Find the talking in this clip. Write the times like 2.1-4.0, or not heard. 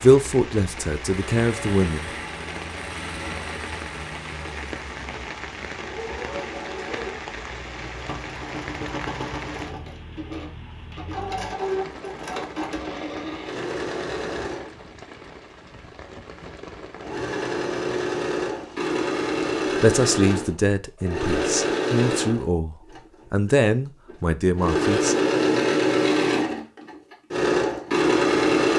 0.0-2.1, 19.8-25.1.